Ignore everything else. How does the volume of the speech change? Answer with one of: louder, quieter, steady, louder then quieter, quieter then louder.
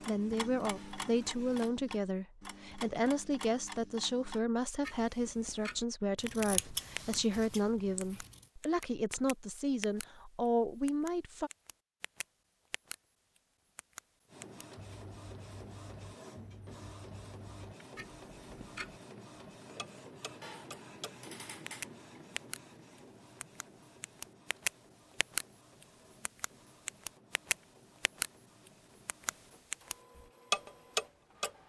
steady.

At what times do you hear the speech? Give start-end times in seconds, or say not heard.
0.1-11.5.